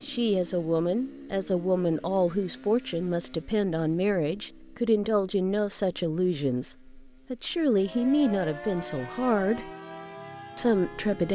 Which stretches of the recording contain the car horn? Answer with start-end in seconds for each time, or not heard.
not heard.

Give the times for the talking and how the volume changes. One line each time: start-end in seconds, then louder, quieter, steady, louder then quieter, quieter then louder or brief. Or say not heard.
0.0-9.7 steady
10.6-11.2 brief.